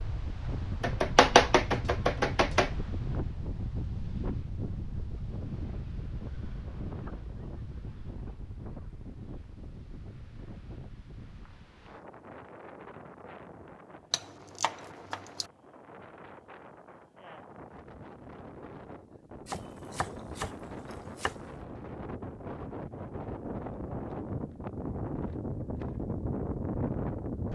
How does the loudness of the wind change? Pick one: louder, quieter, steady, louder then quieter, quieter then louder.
quieter then louder.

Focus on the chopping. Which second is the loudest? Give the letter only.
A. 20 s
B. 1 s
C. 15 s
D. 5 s
B.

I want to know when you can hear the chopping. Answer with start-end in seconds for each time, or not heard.
0.8-2.7, 14.1-15.4, 19.4-21.4.